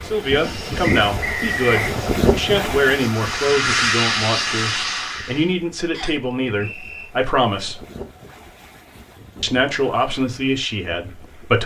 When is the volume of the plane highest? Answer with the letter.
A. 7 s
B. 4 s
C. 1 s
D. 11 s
B.